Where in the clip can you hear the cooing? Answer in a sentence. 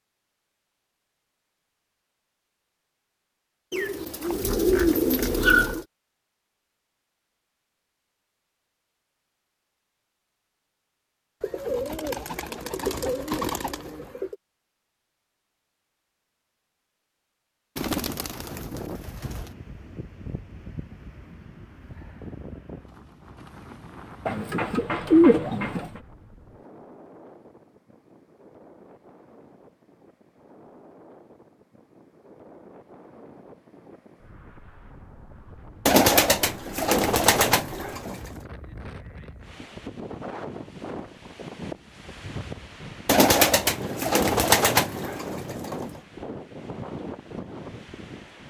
The cooing can be heard from 3.7 to 5.8 s, from 11.4 to 14.3 s, from 17.8 to 19.5 s, from 24.2 to 26.0 s, from 35.9 to 38.2 s and from 43.0 to 45.9 s.